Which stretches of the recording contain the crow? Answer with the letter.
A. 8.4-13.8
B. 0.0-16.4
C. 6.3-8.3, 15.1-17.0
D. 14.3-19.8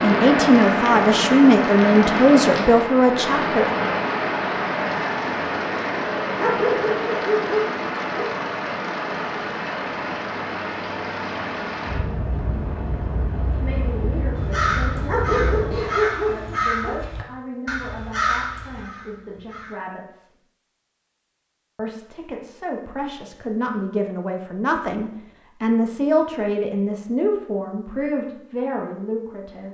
D.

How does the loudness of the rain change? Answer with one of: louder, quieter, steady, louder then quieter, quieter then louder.
quieter.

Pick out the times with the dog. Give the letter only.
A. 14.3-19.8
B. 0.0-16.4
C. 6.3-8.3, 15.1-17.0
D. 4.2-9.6
C.